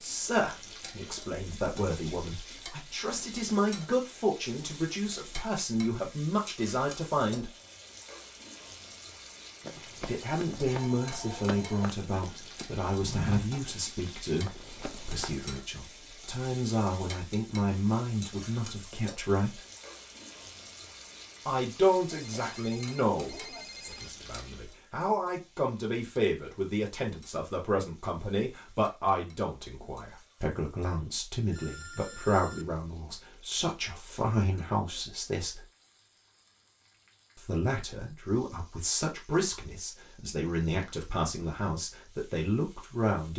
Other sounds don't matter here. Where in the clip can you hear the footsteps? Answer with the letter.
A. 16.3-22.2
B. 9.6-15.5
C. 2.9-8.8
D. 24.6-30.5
B.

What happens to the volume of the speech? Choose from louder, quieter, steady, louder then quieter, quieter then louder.
steady.